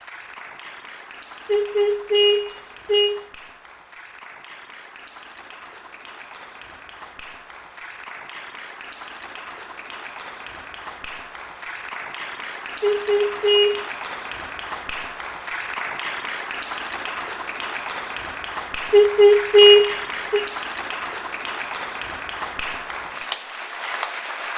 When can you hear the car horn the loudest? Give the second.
20 s.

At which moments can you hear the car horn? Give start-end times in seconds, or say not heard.
1.4-3.1, 12.8-13.8, 18.9-20.4.